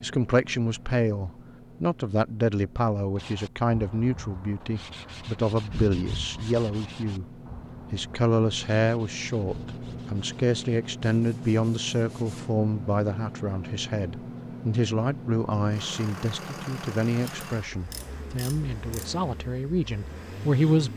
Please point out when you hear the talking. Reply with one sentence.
The talking can be heard from 0.0 to 7.2 s and from 7.9 to 20.9 s.